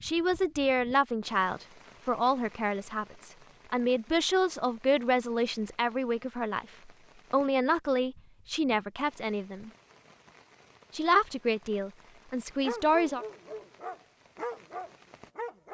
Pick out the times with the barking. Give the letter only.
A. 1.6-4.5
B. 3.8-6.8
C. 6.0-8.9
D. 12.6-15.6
D.